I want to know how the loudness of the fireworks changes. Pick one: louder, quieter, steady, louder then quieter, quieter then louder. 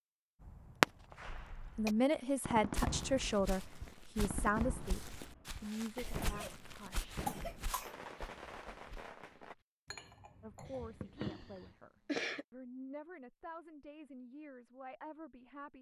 quieter.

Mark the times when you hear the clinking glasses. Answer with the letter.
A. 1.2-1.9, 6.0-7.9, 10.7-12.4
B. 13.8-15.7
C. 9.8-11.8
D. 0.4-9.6
C.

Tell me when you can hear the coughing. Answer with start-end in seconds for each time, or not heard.
1.2-1.9, 6.0-7.9, 10.7-12.4.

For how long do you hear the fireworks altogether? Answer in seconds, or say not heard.
9 s.